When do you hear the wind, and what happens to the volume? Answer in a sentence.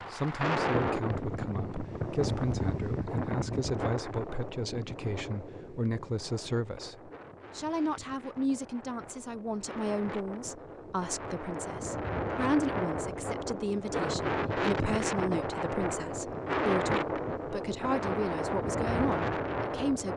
The wind can be heard from 0.0 to 20.1 s, getting quieter then louder.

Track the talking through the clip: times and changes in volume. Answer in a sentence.
The talking can be heard from 0.1 to 20.1 s, at a steady volume.